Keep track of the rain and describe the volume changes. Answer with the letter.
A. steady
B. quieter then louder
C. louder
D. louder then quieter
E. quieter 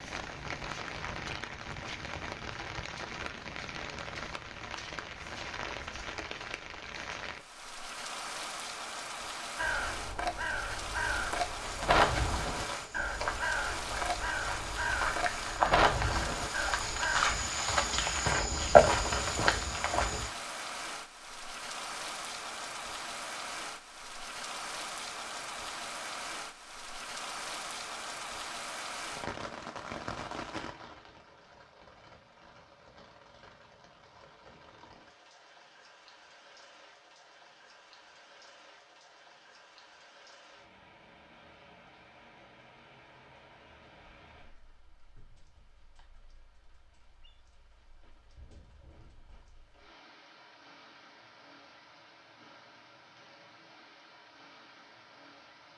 E.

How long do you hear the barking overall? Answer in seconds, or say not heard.
not heard.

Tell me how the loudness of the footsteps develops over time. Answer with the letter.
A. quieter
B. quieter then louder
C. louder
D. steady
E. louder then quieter
C.